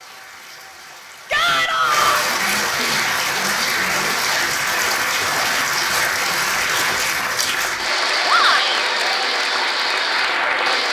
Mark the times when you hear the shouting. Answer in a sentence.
The shouting can be heard from 1.3 to 2.3 s and from 8.2 to 8.8 s.